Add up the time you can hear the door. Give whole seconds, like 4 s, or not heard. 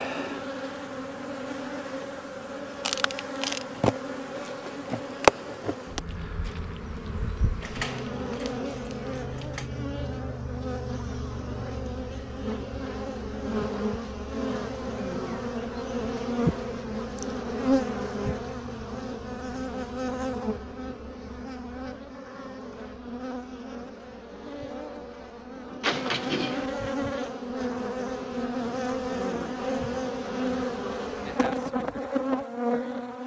3 s.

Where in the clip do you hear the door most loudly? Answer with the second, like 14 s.
26 s.